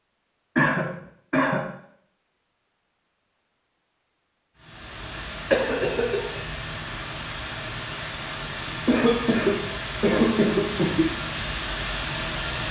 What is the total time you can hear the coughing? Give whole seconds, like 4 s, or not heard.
4 s.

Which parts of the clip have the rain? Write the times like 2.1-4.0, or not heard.
4.5-12.6.